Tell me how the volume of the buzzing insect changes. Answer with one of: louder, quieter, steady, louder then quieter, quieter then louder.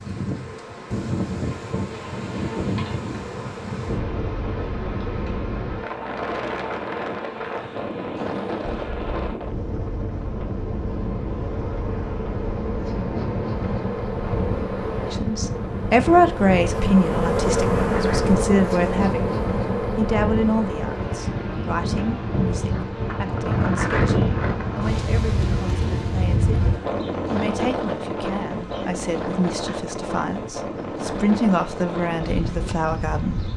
louder then quieter.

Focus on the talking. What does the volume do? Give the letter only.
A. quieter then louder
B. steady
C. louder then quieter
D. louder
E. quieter
A.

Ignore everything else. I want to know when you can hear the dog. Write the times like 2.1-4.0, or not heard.
not heard.